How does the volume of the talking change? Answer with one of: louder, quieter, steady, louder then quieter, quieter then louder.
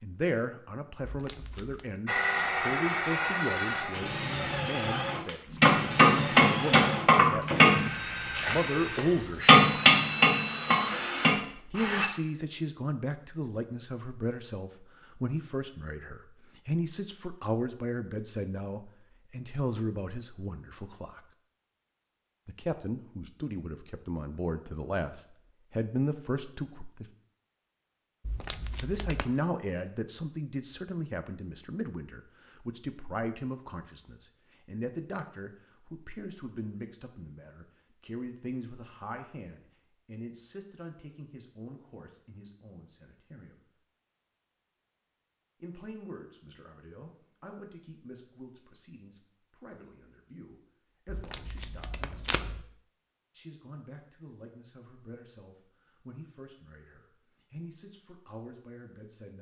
quieter.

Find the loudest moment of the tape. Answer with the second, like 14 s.
52 s.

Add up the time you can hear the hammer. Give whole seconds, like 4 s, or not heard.
6 s.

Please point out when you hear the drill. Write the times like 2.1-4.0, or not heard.
2.0-12.1.